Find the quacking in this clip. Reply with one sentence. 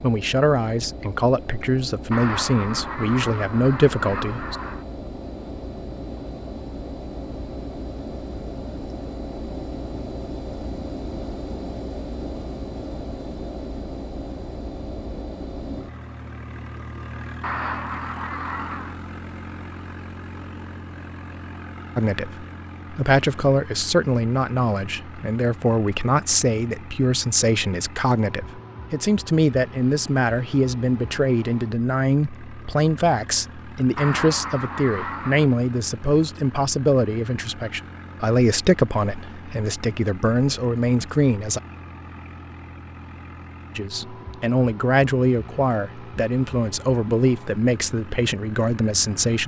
The quacking can be heard from 2.1 to 4.8 s, from 17.4 to 19.0 s and from 34.0 to 35.5 s.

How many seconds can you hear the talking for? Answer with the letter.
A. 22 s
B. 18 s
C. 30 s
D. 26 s
C.